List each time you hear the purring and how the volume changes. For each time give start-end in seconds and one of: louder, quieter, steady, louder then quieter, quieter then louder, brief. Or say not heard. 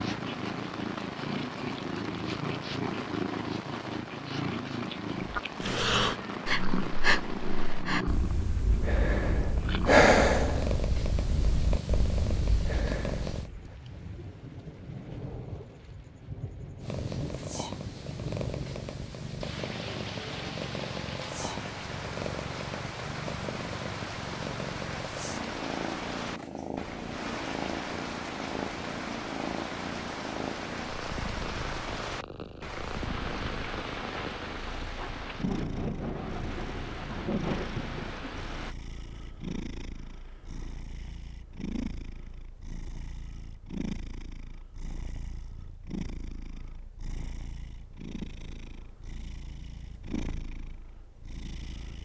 0.0-13.5 steady
16.8-52.0 quieter.